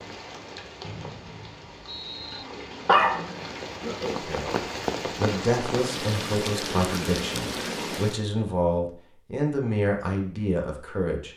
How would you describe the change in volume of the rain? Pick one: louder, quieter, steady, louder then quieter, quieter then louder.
louder.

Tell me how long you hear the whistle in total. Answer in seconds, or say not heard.
2 s.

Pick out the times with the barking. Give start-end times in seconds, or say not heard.
2.9-4.2.